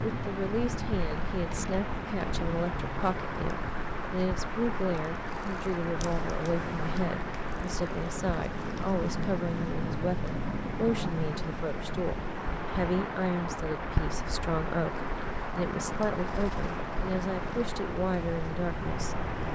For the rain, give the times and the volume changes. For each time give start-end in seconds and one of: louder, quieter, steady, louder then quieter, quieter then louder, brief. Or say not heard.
0.0-19.5 steady.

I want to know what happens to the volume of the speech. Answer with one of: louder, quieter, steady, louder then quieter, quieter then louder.
steady.